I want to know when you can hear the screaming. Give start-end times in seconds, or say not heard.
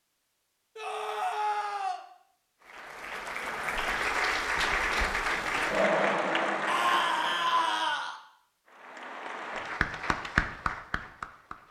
0.8-2.0, 6.7-8.2.